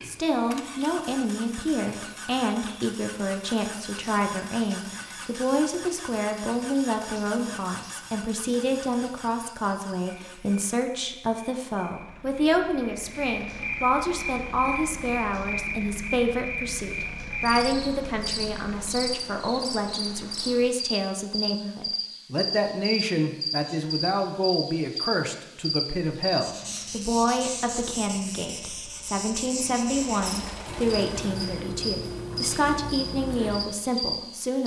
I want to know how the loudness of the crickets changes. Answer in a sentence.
The volume of the crickets goes up.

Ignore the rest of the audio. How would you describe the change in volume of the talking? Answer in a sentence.
The volume of the talking stays about the same.